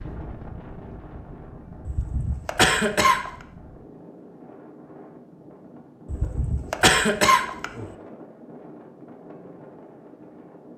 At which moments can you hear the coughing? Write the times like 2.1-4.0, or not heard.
1.9-3.3, 6.1-7.8.